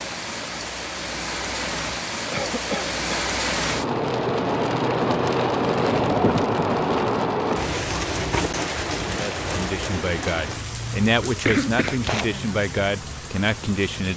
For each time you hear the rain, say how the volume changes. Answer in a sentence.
You can hear the rain from 0.0 to 14.1 s, getting louder then quieter.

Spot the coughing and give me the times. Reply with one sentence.
You can hear the coughing from 2.3 to 3.8 s and from 11.2 to 12.3 s.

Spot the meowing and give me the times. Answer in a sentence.
The meowing can't be heard in this clip.